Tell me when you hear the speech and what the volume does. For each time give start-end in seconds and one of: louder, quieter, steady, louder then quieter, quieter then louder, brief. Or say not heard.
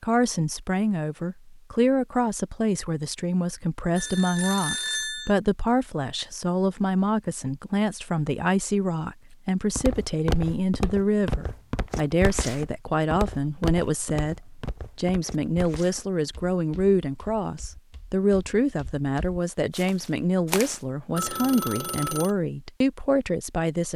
0.0-23.9 steady.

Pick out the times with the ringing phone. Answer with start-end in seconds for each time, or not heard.
4.0-5.3, 21.1-22.4.